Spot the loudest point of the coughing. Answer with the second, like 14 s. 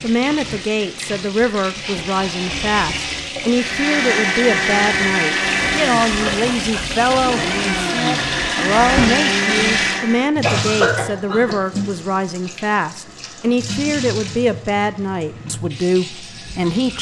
11 s.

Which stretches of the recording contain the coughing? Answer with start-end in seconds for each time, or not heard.
6.0-6.4, 10.4-11.6.